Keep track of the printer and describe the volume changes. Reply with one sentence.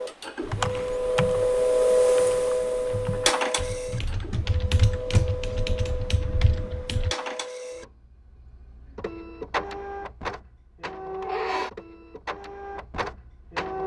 The loudness of the printer goes down.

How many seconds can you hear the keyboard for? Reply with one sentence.
The keyboard can be heard for 7 seconds in total.